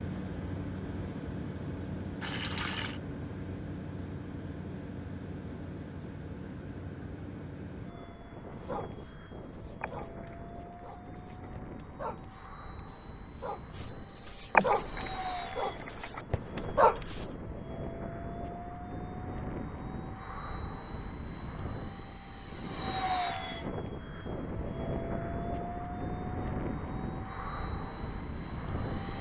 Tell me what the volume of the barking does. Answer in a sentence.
The loudness of the barking goes up.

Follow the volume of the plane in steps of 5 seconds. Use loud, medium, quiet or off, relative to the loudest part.
loud, medium, medium, loud, loud, loud.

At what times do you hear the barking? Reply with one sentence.
You can hear the barking from 8.5 to 17.4 s.